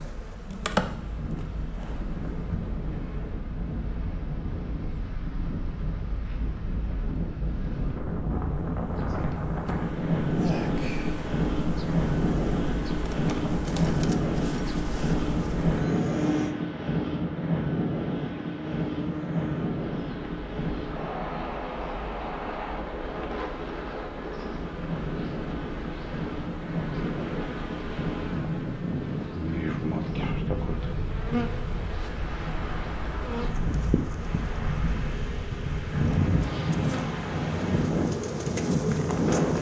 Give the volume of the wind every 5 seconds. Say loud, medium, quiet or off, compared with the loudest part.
medium, medium, loud, loud, medium, medium, medium, loud.